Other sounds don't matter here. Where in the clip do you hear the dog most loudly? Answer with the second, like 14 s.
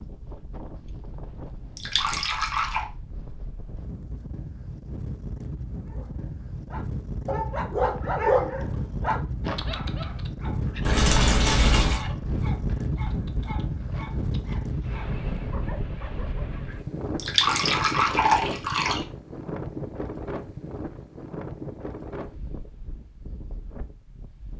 8 s.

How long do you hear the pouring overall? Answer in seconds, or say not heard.
4 s.